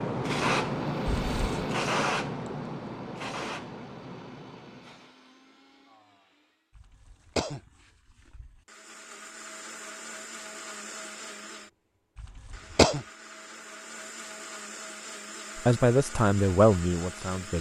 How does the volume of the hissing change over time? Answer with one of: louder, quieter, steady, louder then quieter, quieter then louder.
quieter.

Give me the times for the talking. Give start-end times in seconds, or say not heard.
15.6-17.5.